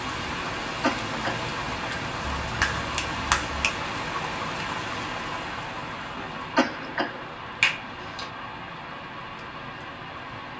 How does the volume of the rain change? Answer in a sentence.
The volume of the rain goes down.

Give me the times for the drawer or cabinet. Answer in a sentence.
You can't hear the drawer or cabinet here.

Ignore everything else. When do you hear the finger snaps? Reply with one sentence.
The finger snaps can be heard from 2.4 to 3.8 s and from 7.6 to 8.3 s.